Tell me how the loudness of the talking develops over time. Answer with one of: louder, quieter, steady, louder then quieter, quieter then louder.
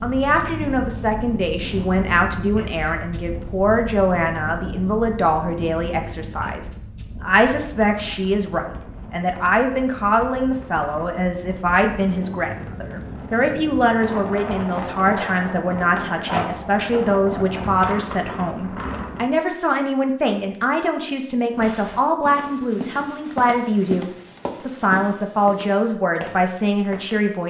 steady.